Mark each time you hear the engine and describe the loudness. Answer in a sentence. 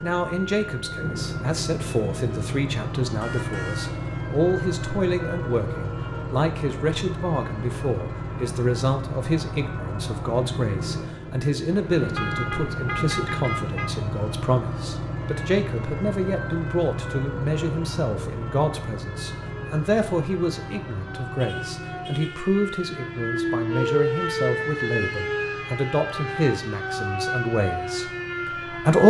You can hear the engine from 0.0 to 29.0 s, getting quieter.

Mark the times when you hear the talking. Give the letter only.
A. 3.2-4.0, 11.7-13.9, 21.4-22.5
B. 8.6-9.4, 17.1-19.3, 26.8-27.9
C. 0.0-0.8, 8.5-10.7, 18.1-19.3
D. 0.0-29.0
D.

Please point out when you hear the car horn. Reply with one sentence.
The car horn can be heard from 3.2 to 4.0 s, from 11.7 to 13.9 s and from 21.4 to 22.5 s.